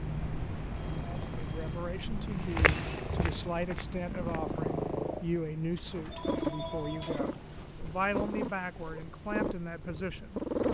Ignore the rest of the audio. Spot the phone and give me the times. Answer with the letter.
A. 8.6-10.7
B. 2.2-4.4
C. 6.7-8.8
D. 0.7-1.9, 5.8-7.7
D.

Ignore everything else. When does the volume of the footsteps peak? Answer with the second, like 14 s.
3 s.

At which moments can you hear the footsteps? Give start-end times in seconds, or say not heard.
2.2-4.4.